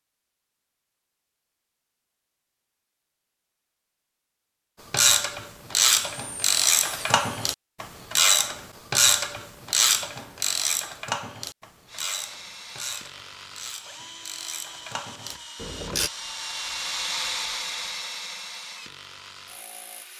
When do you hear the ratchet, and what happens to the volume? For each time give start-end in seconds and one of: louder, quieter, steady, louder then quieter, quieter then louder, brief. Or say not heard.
4.9-16.1 quieter.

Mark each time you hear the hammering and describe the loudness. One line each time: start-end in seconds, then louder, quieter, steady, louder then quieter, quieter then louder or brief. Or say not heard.
not heard.